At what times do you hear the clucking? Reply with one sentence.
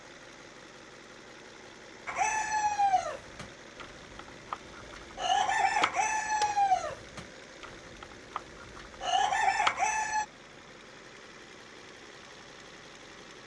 The clucking can be heard from 2.0 to 10.2 s.